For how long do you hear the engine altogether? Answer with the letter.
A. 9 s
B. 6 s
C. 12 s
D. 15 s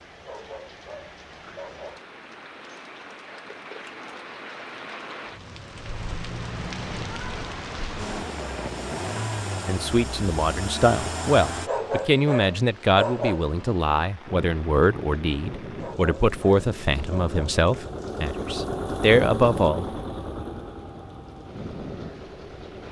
C.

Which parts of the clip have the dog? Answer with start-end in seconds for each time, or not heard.
0.2-2.1, 11.7-13.5, 15.8-17.6.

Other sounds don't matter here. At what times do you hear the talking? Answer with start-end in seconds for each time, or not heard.
9.7-19.9.